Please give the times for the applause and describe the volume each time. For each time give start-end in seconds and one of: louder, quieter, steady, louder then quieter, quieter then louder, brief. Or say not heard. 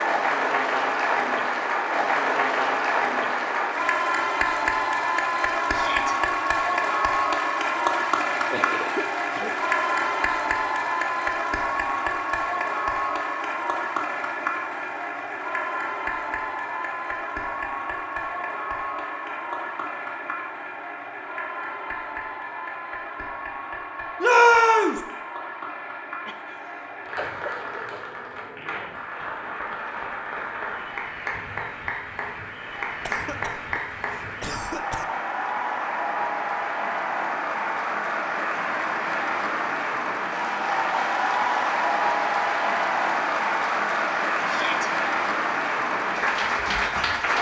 0.0-47.3 quieter then louder.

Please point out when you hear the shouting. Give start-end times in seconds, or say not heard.
5.7-6.2, 24.2-25.0, 44.5-44.9.